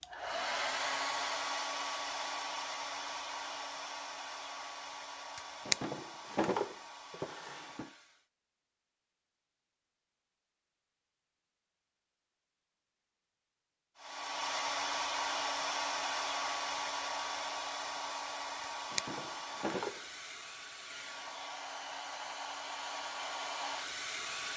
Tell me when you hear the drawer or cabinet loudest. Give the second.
6 s.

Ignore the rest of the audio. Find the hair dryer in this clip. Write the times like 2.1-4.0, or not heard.
0.0-8.2, 13.9-24.5.